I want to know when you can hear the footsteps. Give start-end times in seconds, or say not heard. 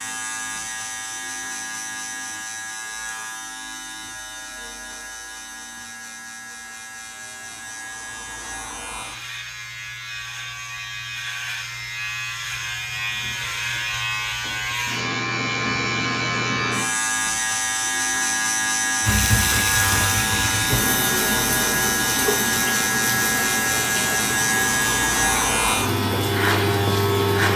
not heard.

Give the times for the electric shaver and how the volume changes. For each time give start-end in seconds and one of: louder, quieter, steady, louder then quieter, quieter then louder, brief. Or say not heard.
0.0-27.5 louder.